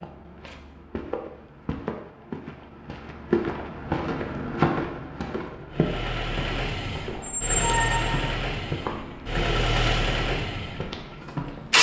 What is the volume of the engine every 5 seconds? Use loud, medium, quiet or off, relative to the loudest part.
off, medium, loud.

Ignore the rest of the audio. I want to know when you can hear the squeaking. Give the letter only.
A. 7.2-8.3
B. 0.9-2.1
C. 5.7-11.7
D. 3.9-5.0
A.